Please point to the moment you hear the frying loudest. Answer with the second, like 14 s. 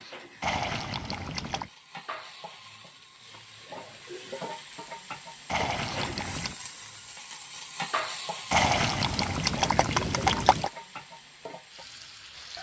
8 s.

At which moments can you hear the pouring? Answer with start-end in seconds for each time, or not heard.
0.4-1.7, 5.5-6.5, 8.5-10.7.